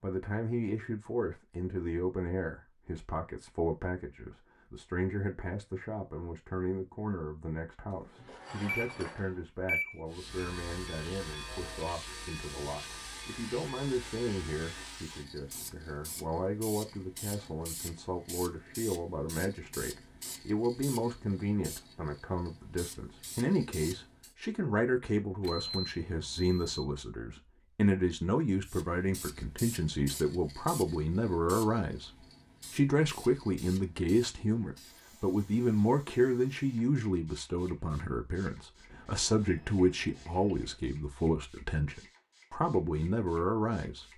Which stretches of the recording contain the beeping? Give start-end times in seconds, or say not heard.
7.9-9.9, 25.4-26.9, 38.9-40.8.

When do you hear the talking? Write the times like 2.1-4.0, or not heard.
0.0-44.1.